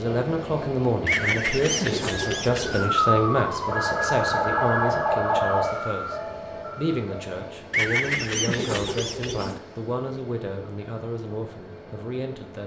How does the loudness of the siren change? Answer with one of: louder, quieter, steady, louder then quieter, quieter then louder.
quieter.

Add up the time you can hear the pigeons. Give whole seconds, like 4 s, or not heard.
4 s.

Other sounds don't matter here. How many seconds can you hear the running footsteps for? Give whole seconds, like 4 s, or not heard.
not heard.